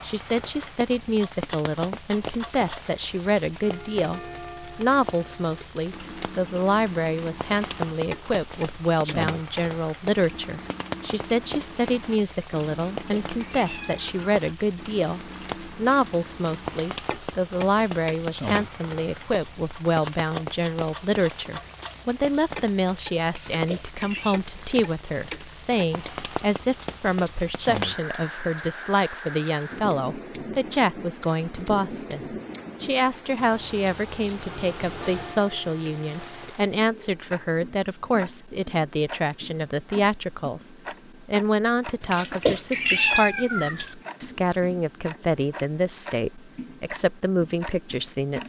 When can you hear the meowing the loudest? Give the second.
43 s.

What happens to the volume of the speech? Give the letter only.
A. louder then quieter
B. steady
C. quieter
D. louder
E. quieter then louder
B.